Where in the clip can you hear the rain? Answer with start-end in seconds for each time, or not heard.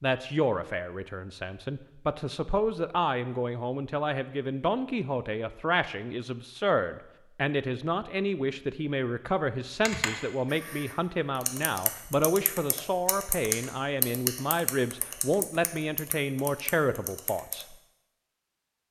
not heard.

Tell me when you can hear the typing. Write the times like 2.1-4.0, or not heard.
9.8-17.6.